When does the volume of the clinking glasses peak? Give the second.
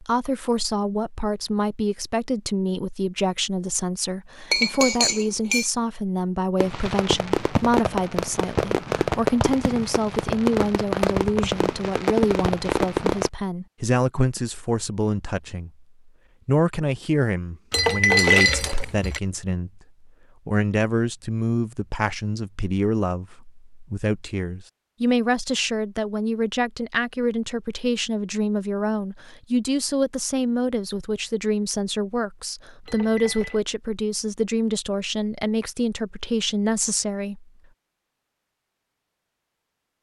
18 s.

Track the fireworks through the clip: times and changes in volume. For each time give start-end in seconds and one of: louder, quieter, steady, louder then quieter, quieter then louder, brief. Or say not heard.
6.6-13.3 steady.